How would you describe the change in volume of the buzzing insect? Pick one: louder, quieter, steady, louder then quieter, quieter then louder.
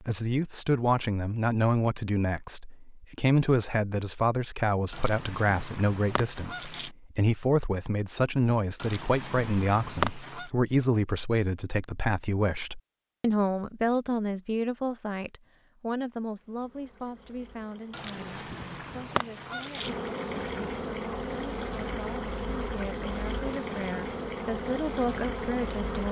louder.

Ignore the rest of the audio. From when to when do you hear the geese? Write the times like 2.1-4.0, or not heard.
4.9-6.9, 8.8-10.5, 17.9-19.9.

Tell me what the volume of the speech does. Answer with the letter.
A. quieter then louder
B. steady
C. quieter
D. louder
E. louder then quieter
C.